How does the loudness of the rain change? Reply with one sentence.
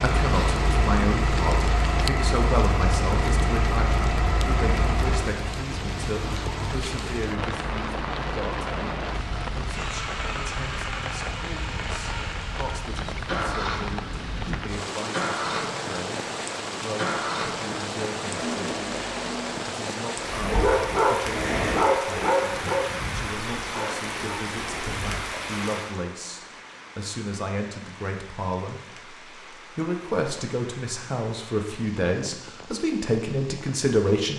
The volume of the rain goes down.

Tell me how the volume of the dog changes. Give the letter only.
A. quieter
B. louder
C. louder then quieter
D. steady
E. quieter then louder
A.